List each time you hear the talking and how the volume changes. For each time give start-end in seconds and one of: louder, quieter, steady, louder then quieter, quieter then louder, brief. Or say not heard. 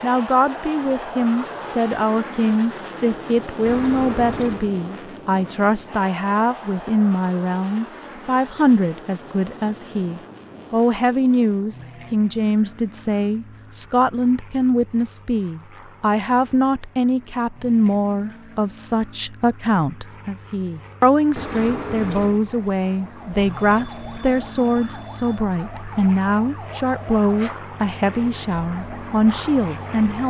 0.0-30.2 steady.